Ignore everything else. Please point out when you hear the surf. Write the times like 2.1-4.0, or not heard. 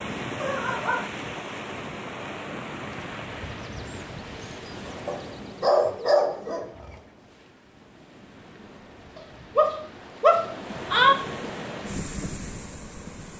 0.0-13.3.